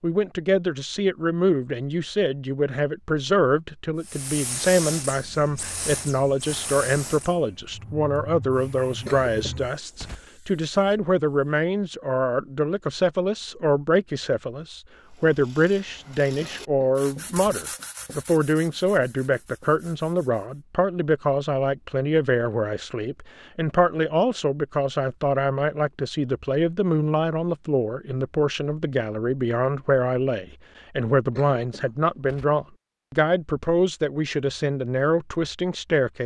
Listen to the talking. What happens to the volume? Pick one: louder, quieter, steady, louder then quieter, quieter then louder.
steady.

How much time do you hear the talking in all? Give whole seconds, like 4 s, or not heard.
36 s.